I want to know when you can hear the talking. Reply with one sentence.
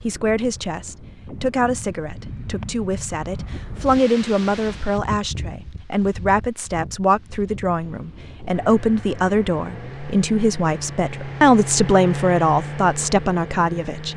The talking can be heard from 0.0 to 14.1 s.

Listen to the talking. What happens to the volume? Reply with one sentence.
The loudness of the talking goes up.